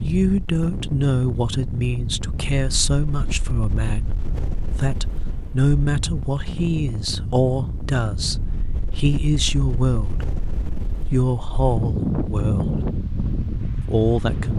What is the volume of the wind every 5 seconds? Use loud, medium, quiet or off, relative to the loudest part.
medium, medium, loud.